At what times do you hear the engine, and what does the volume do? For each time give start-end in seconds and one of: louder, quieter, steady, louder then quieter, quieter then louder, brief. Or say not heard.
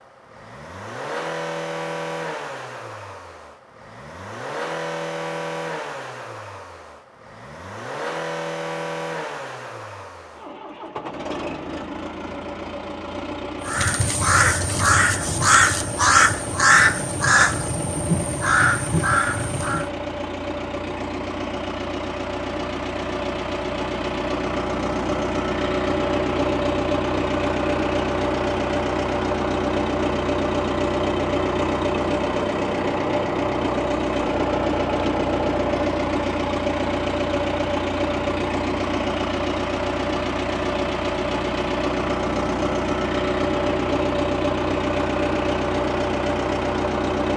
0.0-47.3 louder.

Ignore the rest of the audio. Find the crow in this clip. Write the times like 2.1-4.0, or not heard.
13.7-19.9.